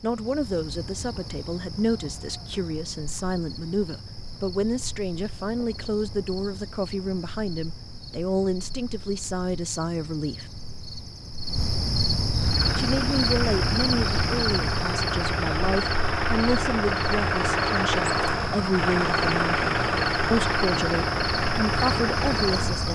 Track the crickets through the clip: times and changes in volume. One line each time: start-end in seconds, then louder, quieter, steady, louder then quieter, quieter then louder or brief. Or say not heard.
0.0-22.9 louder.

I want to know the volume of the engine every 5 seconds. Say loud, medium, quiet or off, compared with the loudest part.
off, off, medium, loud, loud.